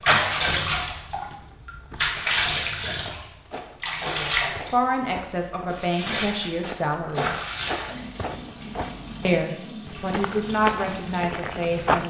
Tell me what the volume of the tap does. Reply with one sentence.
The loudness of the tap goes down.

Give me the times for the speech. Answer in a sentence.
The speech can be heard from 4.0 to 7.3 s and from 9.2 to 12.0 s.